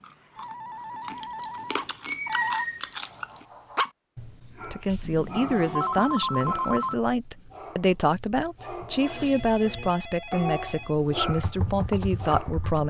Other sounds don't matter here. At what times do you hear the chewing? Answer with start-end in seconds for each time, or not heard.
0.0-3.5.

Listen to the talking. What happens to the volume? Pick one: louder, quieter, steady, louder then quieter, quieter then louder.
steady.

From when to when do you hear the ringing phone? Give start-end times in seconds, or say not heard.
0.3-2.6, 5.0-7.0, 8.9-10.9.